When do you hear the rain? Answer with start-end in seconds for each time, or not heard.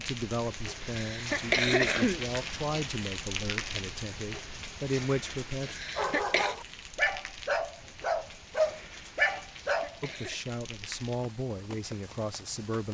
0.0-12.8.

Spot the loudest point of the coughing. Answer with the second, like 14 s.
2 s.